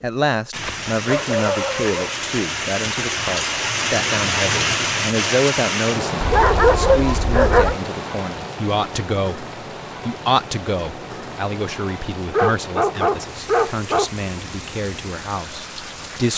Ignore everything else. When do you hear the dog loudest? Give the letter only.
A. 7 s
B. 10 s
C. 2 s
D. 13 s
A.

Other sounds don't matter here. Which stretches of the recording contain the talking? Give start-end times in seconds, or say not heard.
0.0-9.4, 10.1-16.3.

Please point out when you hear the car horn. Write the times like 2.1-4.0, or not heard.
not heard.